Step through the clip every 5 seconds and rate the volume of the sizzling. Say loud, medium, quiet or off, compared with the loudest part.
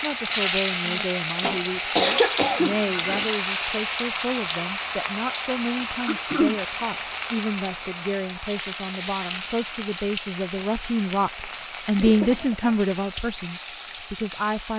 loud, medium, medium.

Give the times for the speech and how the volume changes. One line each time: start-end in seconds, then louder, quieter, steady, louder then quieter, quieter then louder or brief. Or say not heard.
0.0-14.7 louder.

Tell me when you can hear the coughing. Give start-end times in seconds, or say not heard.
1.4-3.4, 6.0-6.6, 11.9-12.8.